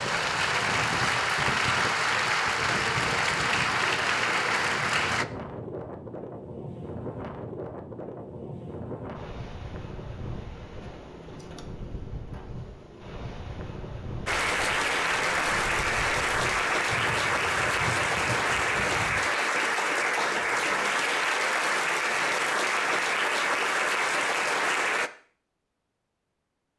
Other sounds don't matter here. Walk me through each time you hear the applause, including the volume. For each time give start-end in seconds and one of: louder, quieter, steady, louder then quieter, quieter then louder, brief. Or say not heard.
0.0-5.2 steady
14.2-25.1 steady.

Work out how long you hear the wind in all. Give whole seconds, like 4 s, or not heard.
19 s.